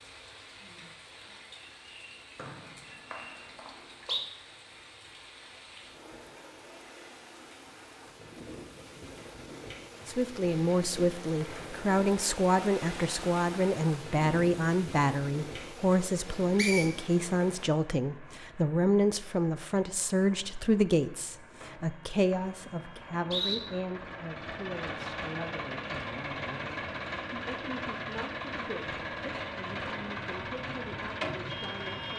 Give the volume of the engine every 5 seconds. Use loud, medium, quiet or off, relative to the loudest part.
off, off, off, quiet, medium, loud, loud.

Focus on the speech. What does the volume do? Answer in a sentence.
The loudness of the speech goes down.